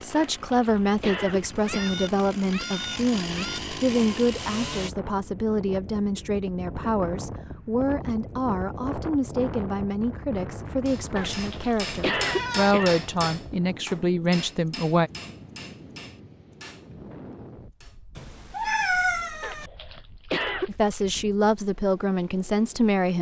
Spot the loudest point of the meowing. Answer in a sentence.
The loudest moment of the meowing is at 19 seconds.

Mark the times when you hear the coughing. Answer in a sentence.
The coughing can be heard from 0.1 to 2.0 s, from 11.2 to 13.1 s and from 19.4 to 21.1 s.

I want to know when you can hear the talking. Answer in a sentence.
You can hear the talking from 0.0 to 15.1 s and from 20.6 to 23.1 s.